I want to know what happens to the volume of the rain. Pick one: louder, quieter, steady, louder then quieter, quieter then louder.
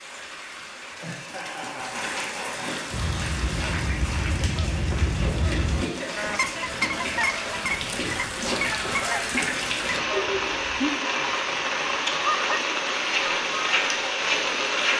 louder.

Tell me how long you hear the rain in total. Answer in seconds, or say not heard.
15 s.